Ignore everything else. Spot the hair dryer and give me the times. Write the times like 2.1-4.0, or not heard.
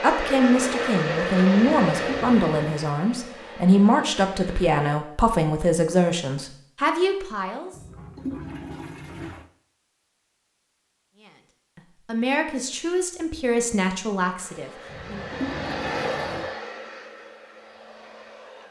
0.0-4.8, 14.3-18.6.